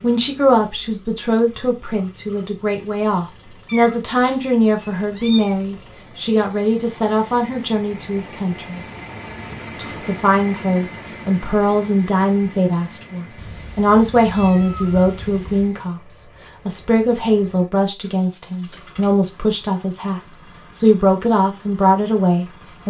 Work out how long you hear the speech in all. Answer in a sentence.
The speech can be heard for 22 seconds in total.